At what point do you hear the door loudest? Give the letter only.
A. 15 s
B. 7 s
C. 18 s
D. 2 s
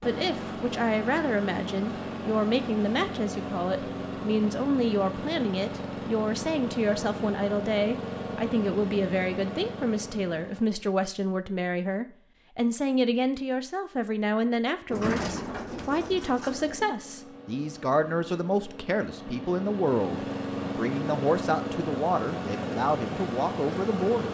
A.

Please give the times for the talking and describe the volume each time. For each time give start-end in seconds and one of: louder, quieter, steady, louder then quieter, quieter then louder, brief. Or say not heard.
0.1-24.2 steady.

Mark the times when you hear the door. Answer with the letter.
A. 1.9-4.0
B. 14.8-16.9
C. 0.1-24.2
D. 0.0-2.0
B.